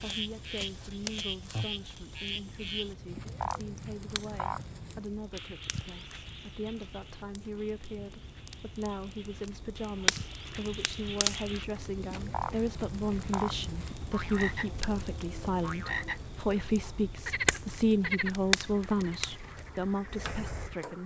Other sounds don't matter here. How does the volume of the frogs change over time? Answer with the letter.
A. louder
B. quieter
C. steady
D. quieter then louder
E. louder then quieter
D.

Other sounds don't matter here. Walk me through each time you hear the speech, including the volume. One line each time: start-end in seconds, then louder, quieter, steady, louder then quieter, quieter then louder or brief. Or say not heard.
0.0-21.0 louder.